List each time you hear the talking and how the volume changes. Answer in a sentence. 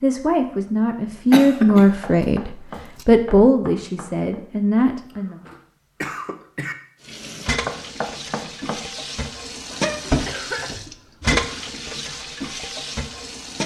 The talking can be heard from 0.0 to 5.3 s, getting louder then quieter.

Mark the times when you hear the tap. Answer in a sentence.
You can hear the tap from 7.0 to 13.6 s.